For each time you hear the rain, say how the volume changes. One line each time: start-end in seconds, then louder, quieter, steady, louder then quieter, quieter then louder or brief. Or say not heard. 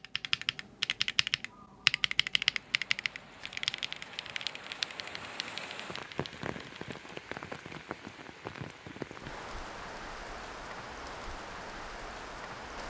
2.4-12.8 louder.